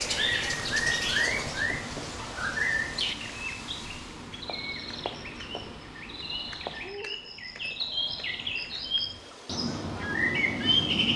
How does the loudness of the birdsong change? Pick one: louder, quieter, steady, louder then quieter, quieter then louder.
quieter then louder.